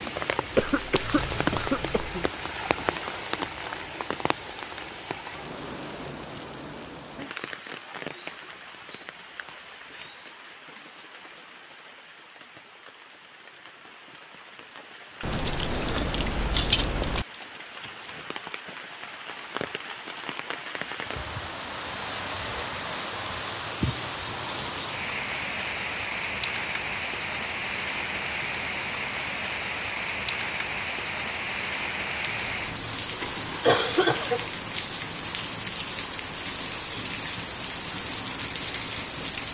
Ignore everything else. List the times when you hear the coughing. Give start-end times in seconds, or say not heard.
0.5-2.3, 33.2-34.5.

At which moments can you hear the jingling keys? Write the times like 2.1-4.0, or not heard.
0.9-1.8, 15.2-17.2, 32.2-32.8.